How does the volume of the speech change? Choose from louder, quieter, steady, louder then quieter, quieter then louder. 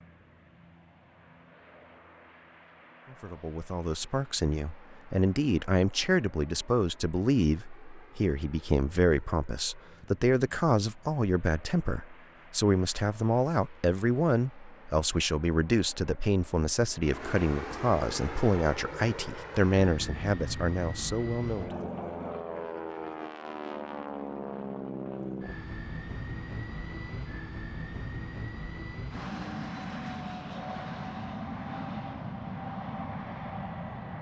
steady.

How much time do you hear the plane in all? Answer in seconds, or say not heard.
34 s.